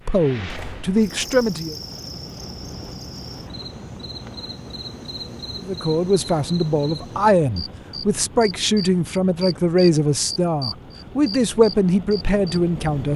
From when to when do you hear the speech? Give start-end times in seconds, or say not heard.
0.1-1.8, 5.5-13.1.